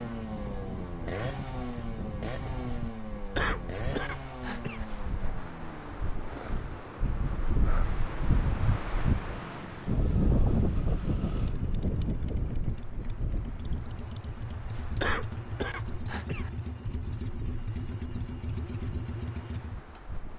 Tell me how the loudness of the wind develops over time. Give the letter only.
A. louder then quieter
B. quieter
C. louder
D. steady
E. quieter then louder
A.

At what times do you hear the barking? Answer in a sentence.
The barking can't be heard in this clip.